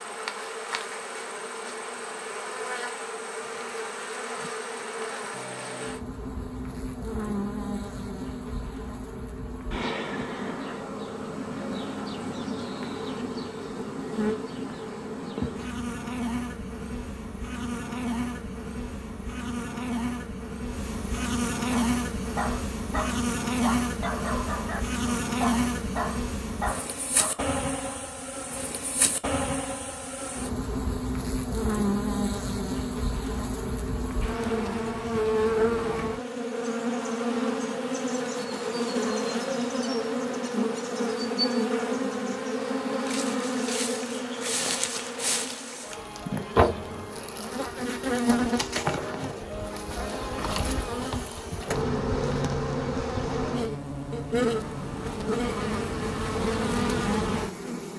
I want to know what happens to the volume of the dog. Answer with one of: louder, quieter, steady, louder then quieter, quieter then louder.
steady.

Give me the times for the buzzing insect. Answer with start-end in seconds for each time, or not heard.
0.0-57.9.